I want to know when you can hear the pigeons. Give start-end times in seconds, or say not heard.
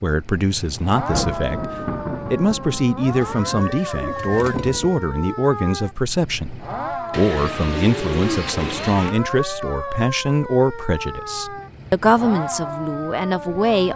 3.1-5.0, 7.1-9.2.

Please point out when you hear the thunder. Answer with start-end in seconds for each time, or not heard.
1.1-3.7.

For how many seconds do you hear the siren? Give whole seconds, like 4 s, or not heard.
14 s.